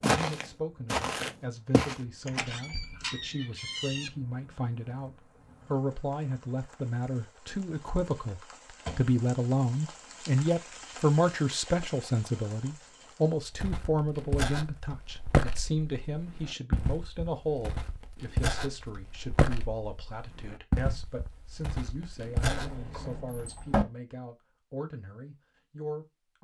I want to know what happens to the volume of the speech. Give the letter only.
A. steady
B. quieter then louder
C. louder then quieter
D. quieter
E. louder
C.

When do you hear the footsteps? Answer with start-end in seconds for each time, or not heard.
0.0-1.9, 13.4-22.8.